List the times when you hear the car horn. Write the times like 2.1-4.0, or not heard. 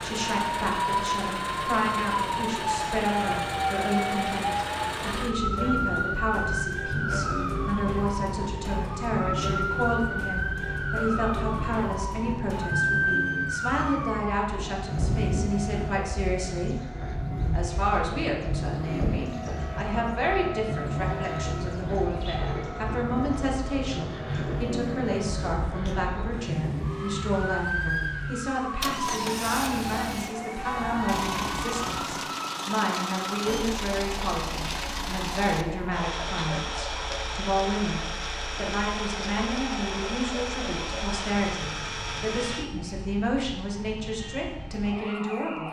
30.6-32.1.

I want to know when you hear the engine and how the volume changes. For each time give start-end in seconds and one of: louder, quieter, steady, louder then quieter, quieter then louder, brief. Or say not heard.
0.0-42.6 steady.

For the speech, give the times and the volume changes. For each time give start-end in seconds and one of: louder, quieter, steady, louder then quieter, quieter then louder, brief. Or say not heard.
0.0-16.8 steady
17.5-45.6 steady.